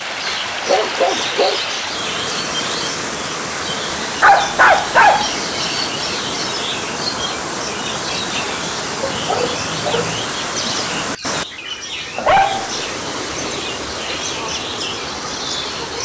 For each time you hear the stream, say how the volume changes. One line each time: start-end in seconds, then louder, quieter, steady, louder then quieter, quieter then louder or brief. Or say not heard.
0.0-16.0 steady.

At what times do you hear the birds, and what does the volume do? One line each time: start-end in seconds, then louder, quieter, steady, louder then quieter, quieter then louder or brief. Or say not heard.
0.0-16.0 steady.